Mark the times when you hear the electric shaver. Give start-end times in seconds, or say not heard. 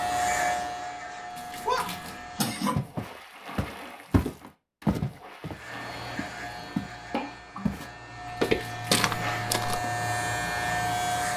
0.0-2.6, 5.5-11.3.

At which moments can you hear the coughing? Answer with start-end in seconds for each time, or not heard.
1.6-2.9, 6.5-7.3.